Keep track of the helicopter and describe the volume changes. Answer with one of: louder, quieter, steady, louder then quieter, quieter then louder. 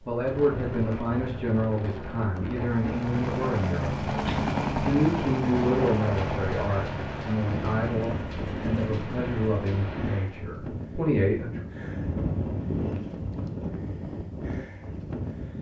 quieter.